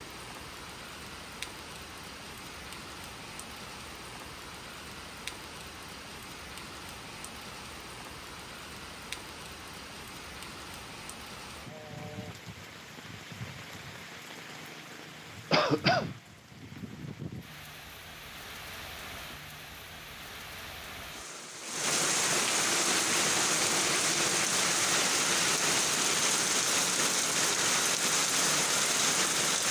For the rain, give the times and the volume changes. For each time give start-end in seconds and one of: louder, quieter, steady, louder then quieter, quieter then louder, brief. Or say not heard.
0.0-29.6 louder.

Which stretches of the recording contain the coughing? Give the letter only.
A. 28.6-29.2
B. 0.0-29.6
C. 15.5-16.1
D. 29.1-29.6
C.